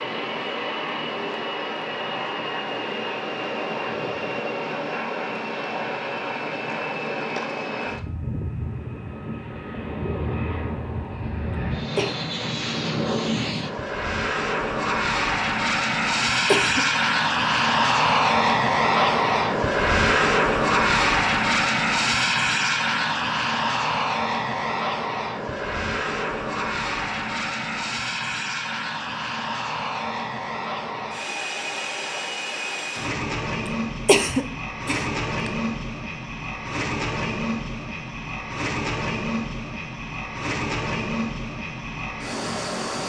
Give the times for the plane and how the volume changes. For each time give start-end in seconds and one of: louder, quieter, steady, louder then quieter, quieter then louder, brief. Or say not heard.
0.0-43.0 louder then quieter.